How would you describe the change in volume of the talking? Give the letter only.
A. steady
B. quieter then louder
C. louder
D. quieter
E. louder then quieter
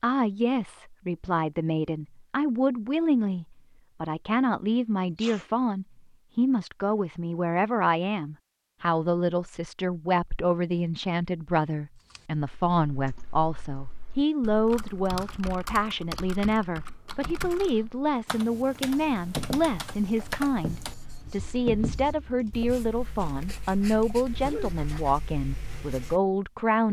A.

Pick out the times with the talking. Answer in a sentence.
You can hear the talking from 0.0 to 26.8 s.